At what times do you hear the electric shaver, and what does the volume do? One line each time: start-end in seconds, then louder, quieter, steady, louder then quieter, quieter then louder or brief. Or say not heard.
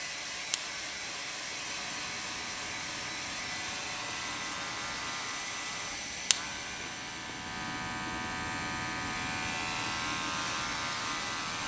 0.0-11.6 louder.